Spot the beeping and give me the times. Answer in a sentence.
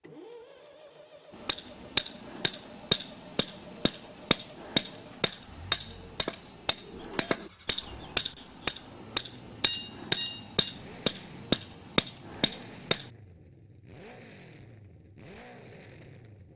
You can hear the beeping from 9.6 to 10.7 s.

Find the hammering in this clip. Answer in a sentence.
You can hear the hammering from 1.4 to 13.1 s.